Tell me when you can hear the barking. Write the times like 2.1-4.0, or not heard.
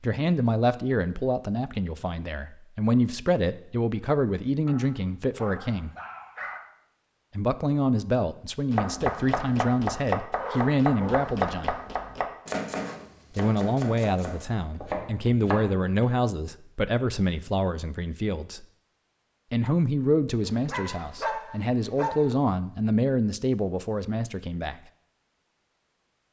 4.7-6.6, 10.3-11.3, 20.4-22.4.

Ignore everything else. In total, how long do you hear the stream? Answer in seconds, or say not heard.
not heard.